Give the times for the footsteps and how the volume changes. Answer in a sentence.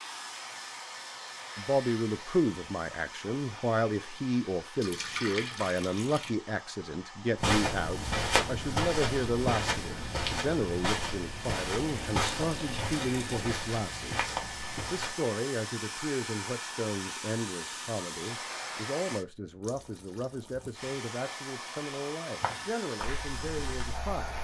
The footsteps can be heard from 7.3 to 15.2 s, getting quieter; and briefly from 22.4 to 24.3 s.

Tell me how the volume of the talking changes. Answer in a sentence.
The volume of the talking goes down.